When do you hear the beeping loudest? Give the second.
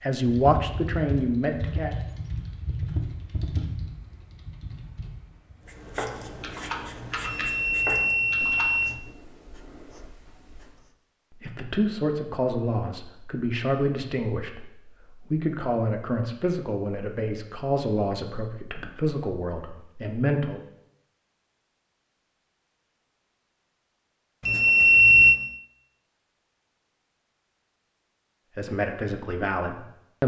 25 s.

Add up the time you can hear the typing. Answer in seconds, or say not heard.
9 s.